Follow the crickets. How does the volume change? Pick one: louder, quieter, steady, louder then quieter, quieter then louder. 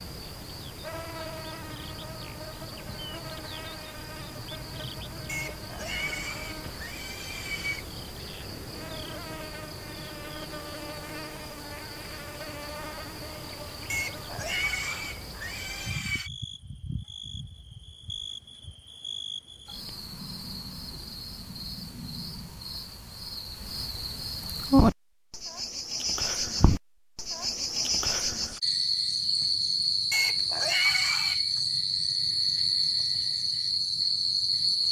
louder.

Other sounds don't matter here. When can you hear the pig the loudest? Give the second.
31 s.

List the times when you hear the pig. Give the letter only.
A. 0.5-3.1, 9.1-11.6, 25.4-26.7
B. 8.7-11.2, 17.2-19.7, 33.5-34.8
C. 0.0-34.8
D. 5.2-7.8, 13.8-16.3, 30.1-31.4
D.